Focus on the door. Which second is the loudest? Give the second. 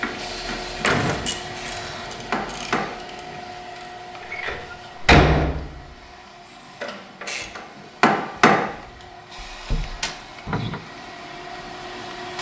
5 s.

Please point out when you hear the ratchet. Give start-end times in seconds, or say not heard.
0.0-3.9.